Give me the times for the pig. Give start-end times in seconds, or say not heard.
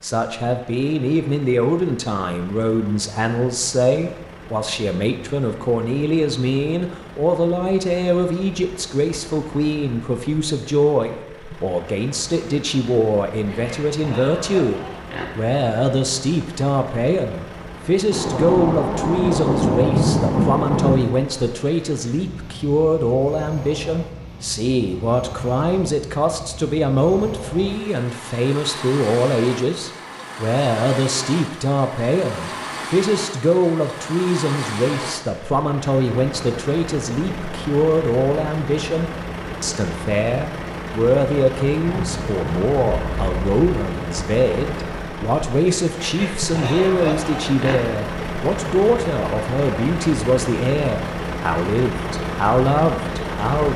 13.4-15.2, 46.0-47.8.